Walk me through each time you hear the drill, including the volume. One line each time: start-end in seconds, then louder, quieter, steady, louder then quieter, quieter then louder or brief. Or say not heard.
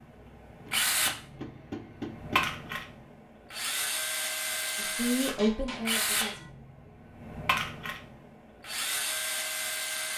0.0-10.1 steady.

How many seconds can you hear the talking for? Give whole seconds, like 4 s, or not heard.
2 s.